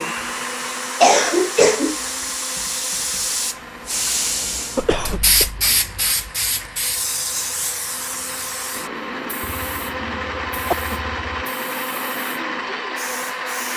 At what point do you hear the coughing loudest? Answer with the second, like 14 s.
1 s.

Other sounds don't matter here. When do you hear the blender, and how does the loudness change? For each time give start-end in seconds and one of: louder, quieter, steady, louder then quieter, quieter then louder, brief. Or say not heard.
0.0-13.7 quieter then louder.